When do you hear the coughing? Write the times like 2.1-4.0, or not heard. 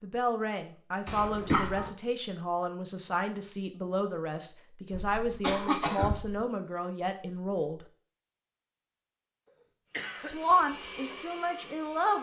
1.1-1.9, 4.9-6.5, 9.9-10.3.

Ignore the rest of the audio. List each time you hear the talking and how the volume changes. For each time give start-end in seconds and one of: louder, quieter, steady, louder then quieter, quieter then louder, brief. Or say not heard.
0.0-7.8 steady
10.2-12.1 brief.